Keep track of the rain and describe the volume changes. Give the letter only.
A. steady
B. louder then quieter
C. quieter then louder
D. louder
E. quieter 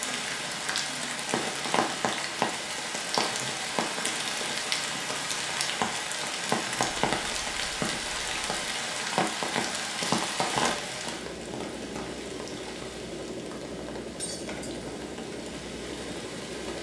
E.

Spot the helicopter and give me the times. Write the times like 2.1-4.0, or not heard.
0.0-16.7.